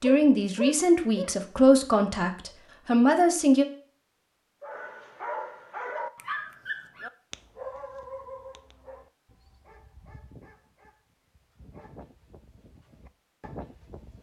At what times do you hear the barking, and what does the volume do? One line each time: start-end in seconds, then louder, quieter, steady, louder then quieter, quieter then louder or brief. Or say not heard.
0.0-1.4 brief
4.6-14.1 quieter then louder.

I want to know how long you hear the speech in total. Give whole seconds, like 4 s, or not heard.
4 s.